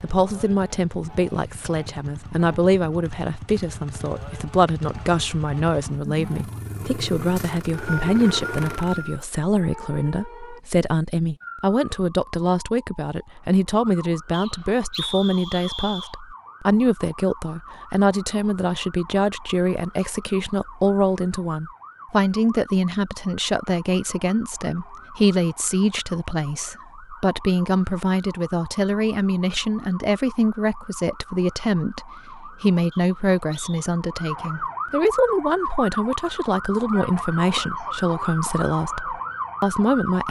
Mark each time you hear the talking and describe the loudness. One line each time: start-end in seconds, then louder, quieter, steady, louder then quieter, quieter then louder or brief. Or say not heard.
0.0-40.2 steady.